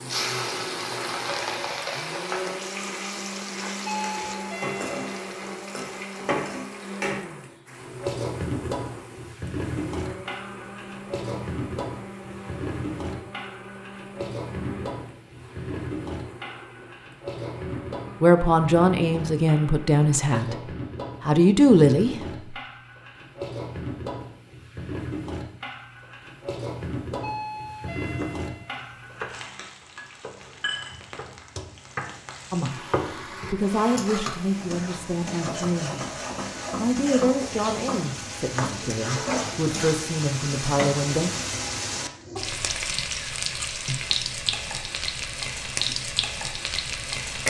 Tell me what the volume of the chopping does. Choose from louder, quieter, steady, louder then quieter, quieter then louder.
quieter then louder.